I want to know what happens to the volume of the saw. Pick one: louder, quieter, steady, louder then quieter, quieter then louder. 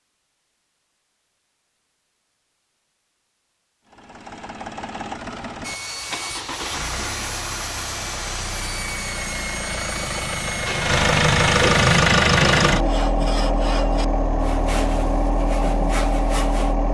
steady.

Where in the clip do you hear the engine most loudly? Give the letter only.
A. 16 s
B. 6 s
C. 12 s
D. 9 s
C.